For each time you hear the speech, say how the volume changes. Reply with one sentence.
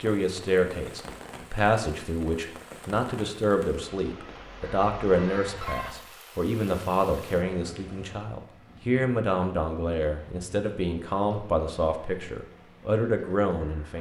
You can hear the speech from 0.0 to 13.9 s, at a steady volume.